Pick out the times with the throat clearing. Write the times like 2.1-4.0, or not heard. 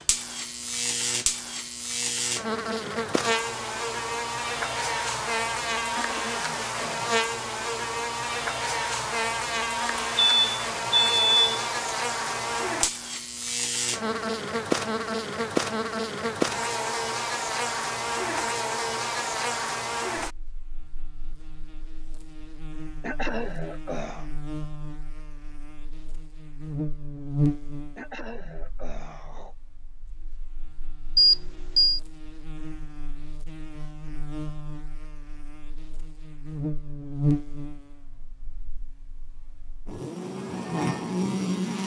5.9-7.2, 23.0-24.3, 27.9-29.6.